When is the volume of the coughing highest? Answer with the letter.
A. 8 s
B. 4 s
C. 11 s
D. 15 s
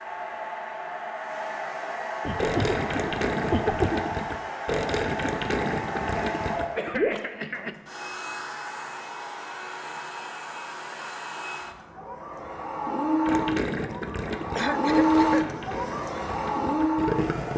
B.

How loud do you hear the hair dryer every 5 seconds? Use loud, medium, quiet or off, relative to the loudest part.
medium, medium, medium, loud.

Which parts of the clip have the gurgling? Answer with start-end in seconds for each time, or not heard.
2.4-7.2, 13.2-17.5.